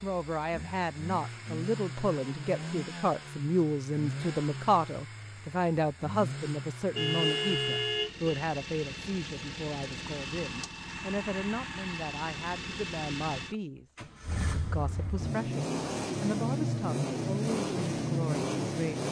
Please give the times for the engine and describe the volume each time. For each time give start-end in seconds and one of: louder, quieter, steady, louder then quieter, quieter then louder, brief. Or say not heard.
0.0-19.0 louder.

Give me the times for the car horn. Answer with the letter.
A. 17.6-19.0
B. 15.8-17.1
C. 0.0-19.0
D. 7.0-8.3
D.